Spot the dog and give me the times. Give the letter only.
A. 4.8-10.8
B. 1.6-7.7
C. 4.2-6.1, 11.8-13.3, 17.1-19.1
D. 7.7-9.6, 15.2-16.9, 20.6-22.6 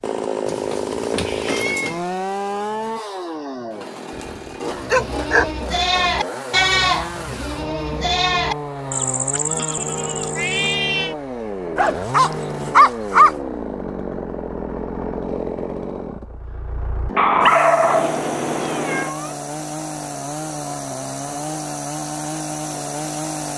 C.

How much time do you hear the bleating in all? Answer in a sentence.
You can hear the bleating for 6 seconds altogether.